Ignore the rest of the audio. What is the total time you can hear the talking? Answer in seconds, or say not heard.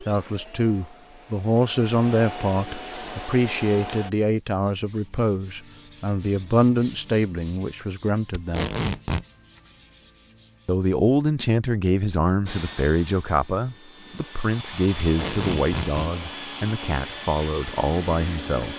17 s.